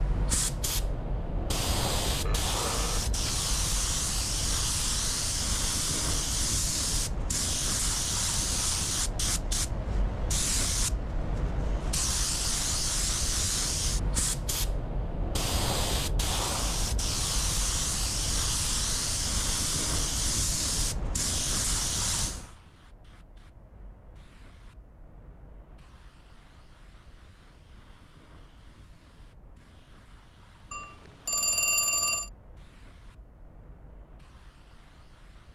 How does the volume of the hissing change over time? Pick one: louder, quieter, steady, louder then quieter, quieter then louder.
quieter.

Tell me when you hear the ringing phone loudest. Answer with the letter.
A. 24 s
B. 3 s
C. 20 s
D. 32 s
D.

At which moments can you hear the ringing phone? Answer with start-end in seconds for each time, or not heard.
2.2-3.1, 30.7-32.3.